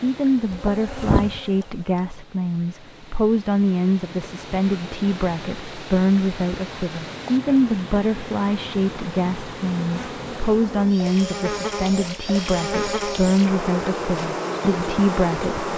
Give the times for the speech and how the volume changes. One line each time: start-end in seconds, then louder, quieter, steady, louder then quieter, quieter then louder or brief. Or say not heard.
0.0-15.7 steady.